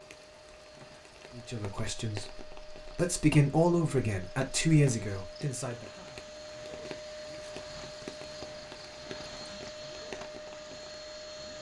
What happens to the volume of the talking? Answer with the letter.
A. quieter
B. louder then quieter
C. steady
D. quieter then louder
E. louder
B.